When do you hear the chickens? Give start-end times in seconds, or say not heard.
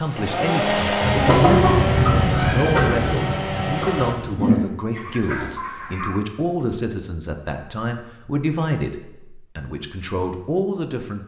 1.0-6.1.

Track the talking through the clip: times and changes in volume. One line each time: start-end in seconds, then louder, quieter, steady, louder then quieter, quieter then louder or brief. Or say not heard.
0.0-11.2 steady.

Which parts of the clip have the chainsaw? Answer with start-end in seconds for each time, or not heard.
0.0-4.2.